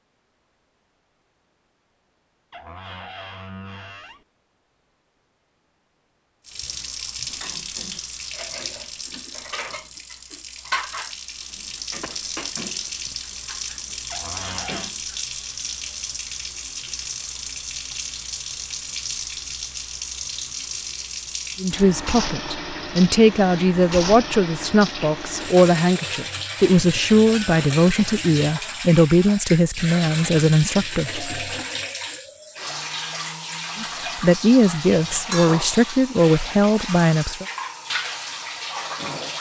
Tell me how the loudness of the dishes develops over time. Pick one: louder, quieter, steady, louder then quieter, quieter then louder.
louder then quieter.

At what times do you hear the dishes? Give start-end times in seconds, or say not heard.
7.2-15.2.